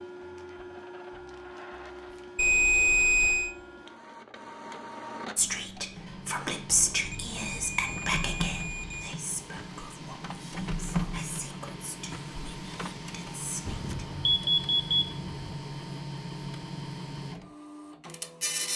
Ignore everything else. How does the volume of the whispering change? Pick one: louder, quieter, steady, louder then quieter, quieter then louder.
quieter.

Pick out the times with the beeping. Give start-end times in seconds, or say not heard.
2.4-3.5, 6.8-9.2, 13.7-15.6.